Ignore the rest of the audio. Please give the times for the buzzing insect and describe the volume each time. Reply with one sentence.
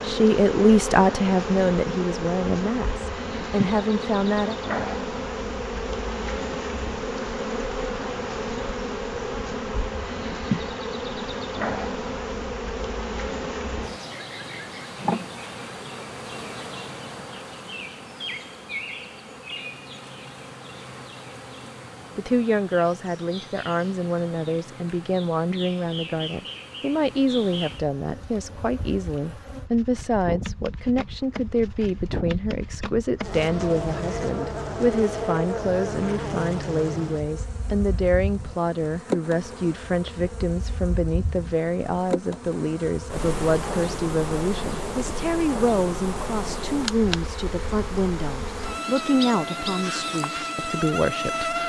You can hear the buzzing insect from 0.0 to 51.6 s, getting quieter then louder.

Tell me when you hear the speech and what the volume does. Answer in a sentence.
The speech can be heard from 0.0 to 4.6 s, getting quieter then louder; and from 22.1 to 51.6 s, at a steady volume.